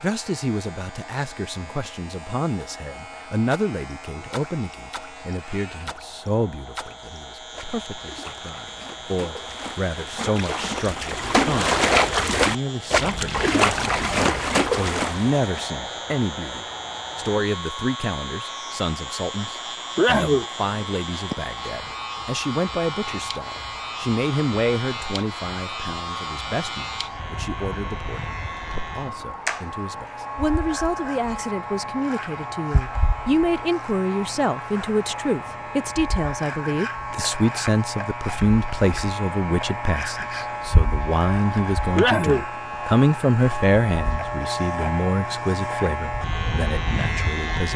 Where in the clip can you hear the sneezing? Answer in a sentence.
The sneezing can be heard from 19.6 to 20.4 s and from 42.0 to 42.5 s.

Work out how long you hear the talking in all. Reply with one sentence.
You can hear the talking for 48 seconds altogether.